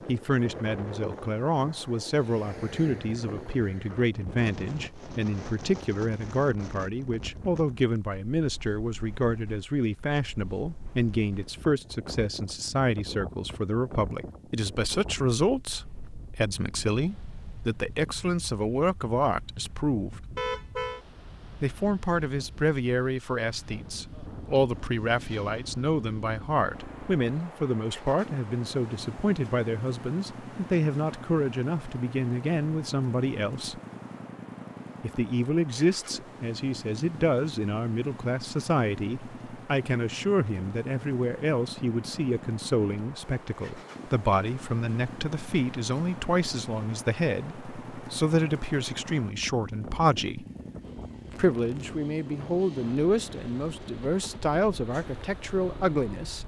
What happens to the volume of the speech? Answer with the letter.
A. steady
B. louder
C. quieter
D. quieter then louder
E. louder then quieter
A.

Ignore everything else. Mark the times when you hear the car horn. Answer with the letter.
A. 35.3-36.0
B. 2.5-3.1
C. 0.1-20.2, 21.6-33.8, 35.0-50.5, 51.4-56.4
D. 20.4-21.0
D.